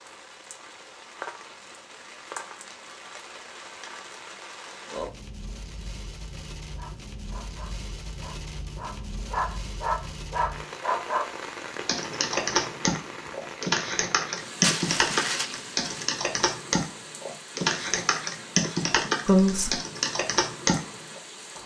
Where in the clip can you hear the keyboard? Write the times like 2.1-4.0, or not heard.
11.8-21.2.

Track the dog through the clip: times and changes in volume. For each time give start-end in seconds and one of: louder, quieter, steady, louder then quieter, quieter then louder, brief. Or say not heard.
6.8-11.3 louder.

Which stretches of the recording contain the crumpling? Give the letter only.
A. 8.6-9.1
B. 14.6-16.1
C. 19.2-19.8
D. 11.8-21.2
B.